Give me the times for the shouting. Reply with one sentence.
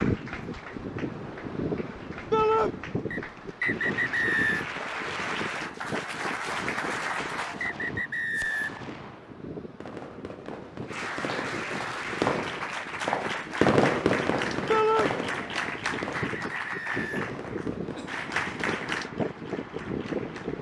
You can hear the shouting from 2.3 to 2.7 s and from 14.7 to 15.1 s.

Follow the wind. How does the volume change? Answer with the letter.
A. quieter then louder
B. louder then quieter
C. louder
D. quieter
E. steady
A.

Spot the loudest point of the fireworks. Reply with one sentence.
The volume of the fireworks peaks at 14 seconds.